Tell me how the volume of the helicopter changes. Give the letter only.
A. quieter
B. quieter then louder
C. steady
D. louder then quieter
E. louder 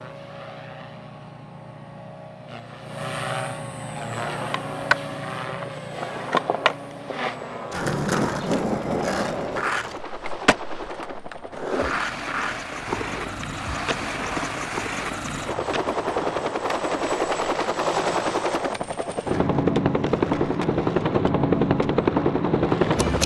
E.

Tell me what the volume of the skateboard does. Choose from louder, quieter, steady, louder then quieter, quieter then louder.
quieter.